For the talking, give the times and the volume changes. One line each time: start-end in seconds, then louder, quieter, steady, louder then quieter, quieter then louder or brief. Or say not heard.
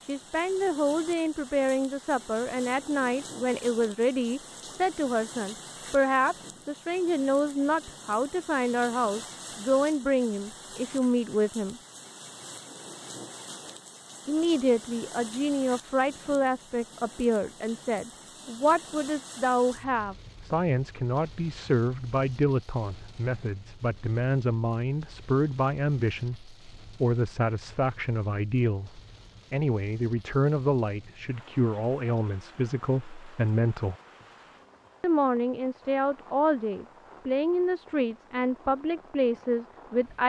0.1-11.8 steady
14.2-34.0 steady
35.0-40.2 steady.